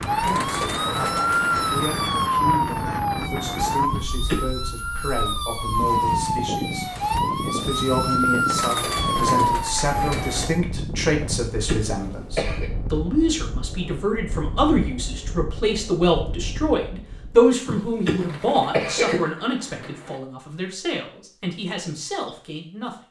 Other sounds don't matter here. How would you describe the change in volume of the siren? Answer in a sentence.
The volume of the siren stays about the same.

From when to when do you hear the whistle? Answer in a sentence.
The whistle can't be heard in this clip.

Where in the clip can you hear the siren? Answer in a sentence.
You can hear the siren from 0.0 to 10.6 s.